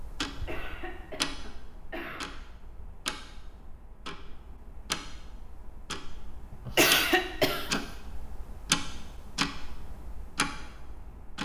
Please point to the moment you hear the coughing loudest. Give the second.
7 s.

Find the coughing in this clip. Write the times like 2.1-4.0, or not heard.
0.3-2.4, 6.7-7.8.